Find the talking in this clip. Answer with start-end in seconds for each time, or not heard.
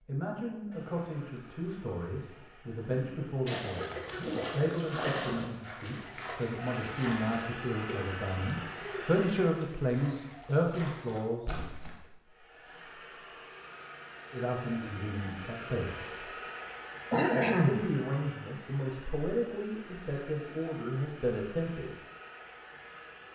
0.1-11.6, 14.3-16.3, 17.6-21.9.